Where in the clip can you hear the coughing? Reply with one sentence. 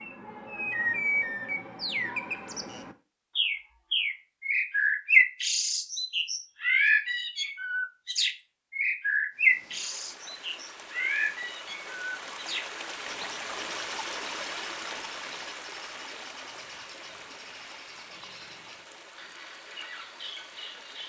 The coughing can't be heard in this clip.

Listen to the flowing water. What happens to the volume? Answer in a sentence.
The volume of the flowing water goes up, then down.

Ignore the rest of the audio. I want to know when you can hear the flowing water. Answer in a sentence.
The flowing water can be heard from 9.3 to 21.0 s.